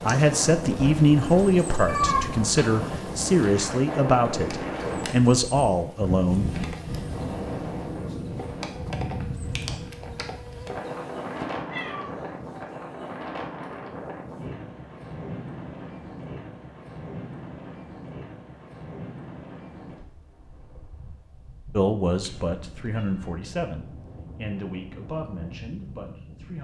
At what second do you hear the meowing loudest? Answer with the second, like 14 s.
2 s.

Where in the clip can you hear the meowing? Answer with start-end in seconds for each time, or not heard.
1.9-2.7, 11.7-12.6, 22.1-23.3.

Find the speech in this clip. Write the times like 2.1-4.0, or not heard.
0.0-6.5, 21.7-26.5.